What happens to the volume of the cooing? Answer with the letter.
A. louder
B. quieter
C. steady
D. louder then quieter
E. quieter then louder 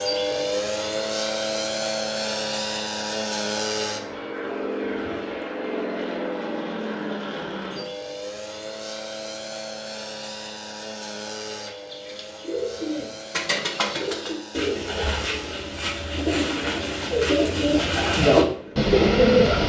A.